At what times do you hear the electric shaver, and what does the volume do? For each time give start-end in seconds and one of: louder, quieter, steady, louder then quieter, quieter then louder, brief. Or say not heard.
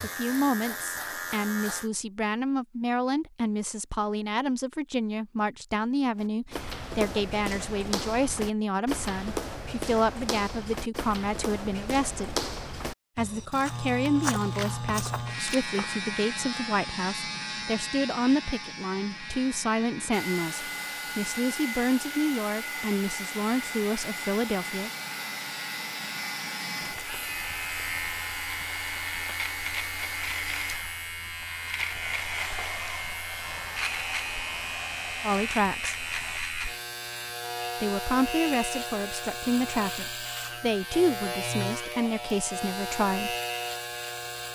0.0-1.9 brief
13.7-44.4 quieter then louder.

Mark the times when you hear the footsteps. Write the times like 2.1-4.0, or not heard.
6.2-16.0.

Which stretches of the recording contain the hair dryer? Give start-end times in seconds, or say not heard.
20.1-36.4.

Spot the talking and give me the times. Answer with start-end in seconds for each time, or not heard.
0.0-12.3, 13.2-24.9, 35.2-36.0, 37.8-43.4.